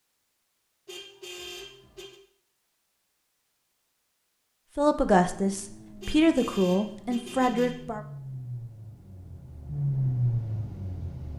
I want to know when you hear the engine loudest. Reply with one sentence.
The volume of the engine peaks at 10 seconds.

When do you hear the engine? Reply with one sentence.
You can hear the engine from 5.2 to 11.3 s.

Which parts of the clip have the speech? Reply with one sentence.
The speech can be heard from 4.8 to 8.0 s.